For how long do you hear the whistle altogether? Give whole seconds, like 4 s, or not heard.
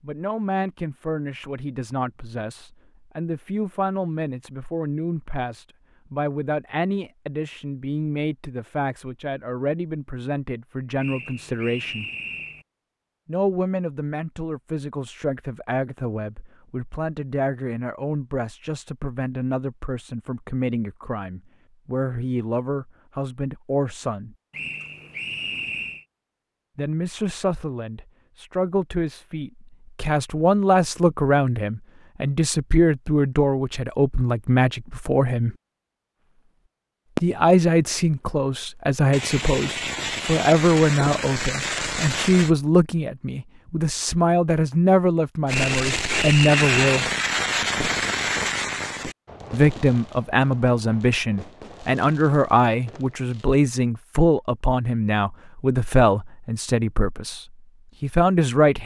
5 s.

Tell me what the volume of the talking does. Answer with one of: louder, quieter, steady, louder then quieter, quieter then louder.
louder.